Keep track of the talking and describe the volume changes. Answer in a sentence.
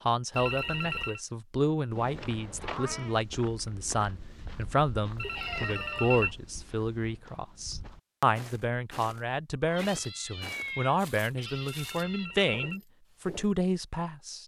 The volume of the talking stays about the same.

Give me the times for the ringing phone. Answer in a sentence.
The ringing phone can be heard from 0.3 to 1.2 s, from 5.2 to 6.3 s and from 11.4 to 12.8 s.